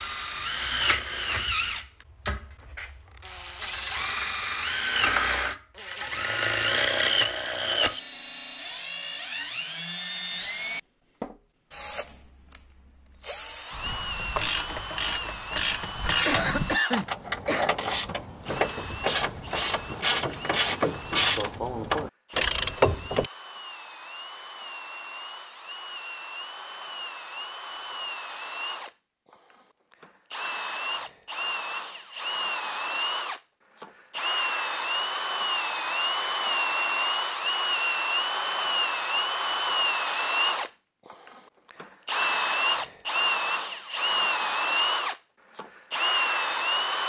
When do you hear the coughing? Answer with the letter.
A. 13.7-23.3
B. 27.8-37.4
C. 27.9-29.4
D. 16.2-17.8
D.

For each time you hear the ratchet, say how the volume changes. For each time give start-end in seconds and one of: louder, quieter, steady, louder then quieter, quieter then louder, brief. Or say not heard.
13.7-23.3 louder.